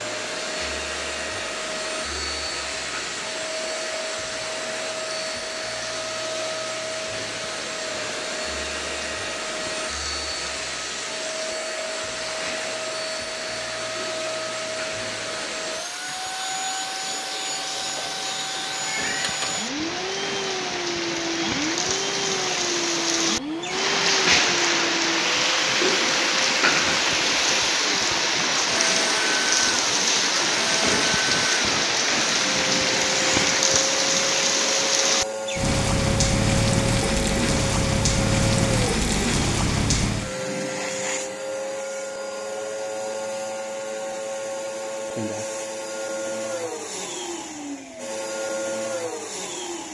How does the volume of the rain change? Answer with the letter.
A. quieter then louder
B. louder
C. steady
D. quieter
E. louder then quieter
B.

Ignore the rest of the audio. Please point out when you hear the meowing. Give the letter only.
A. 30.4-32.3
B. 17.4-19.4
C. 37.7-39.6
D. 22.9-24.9
B.